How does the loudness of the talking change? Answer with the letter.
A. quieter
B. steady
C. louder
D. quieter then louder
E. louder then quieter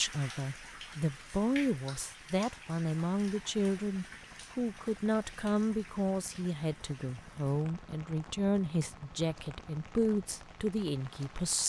B.